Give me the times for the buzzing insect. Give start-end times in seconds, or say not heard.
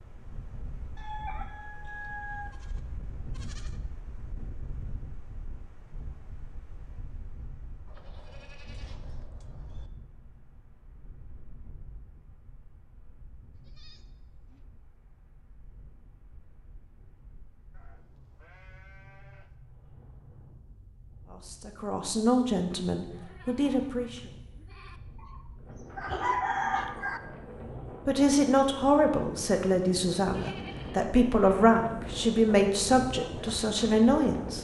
not heard.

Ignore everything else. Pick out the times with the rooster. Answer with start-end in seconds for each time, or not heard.
0.9-2.5, 25.2-27.2.